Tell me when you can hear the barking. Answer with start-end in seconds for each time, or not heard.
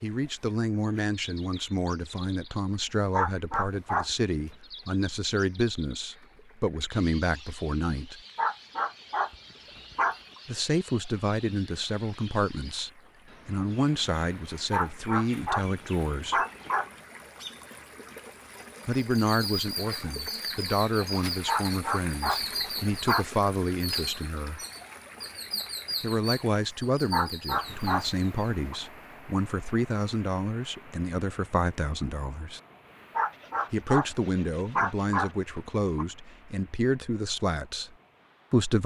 3.1-4.2, 8.3-10.4, 14.7-16.9, 21.4-23.2, 27.1-28.8, 33.1-36.0.